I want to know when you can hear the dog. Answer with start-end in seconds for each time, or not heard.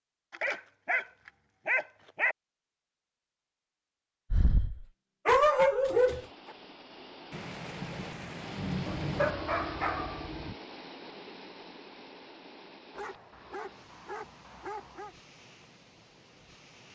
0.3-1.1, 1.6-2.4, 4.3-6.2, 8.8-10.6, 12.9-15.2.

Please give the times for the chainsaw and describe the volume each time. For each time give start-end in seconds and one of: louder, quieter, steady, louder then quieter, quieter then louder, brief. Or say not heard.
not heard.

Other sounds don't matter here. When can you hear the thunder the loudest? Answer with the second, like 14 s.
9 s.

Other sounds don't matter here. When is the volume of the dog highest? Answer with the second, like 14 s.
5 s.